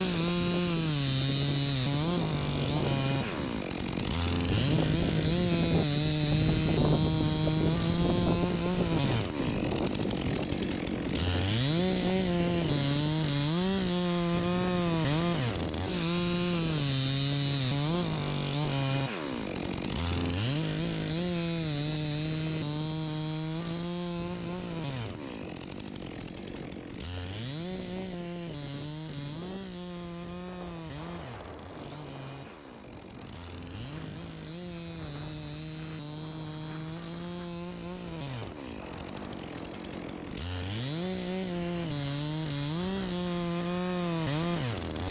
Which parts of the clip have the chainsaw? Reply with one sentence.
You can hear the chainsaw from 0.0 to 45.0 s.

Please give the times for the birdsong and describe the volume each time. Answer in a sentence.
The birdsong can't be heard in this clip.